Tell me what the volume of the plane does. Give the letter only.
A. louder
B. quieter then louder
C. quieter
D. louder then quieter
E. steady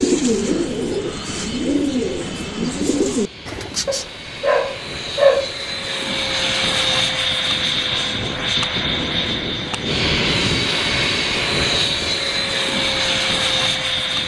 A.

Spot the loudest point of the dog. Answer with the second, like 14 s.
5 s.